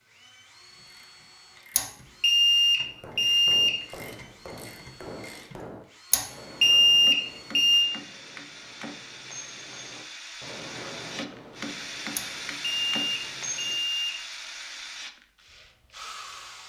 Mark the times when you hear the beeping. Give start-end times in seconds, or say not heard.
1.8-3.7, 6.1-7.9, 12.2-14.2.